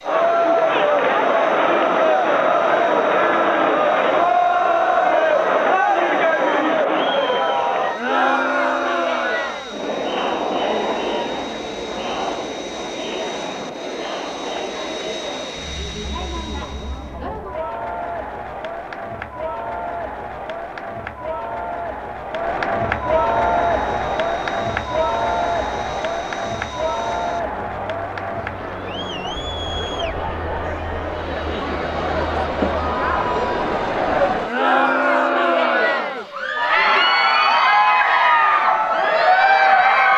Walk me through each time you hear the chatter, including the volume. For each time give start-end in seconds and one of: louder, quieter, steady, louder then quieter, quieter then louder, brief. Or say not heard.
0.0-40.1 quieter then louder.